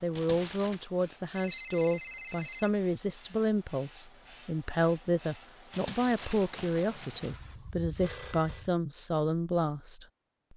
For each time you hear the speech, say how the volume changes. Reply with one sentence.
The speech can be heard from 0.0 to 10.5 s, at a steady volume.